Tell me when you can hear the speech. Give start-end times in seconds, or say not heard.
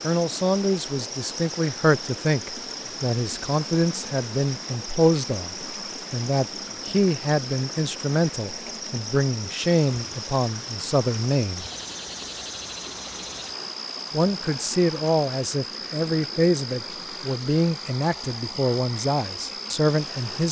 0.0-11.7, 14.1-20.4.